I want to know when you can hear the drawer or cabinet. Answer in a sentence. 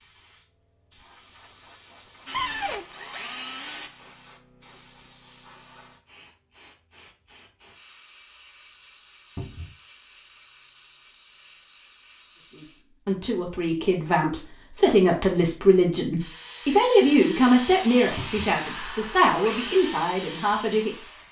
You can hear the drawer or cabinet from 2.3 to 2.9 s, from 9.3 to 9.8 s and from 18.1 to 18.6 s.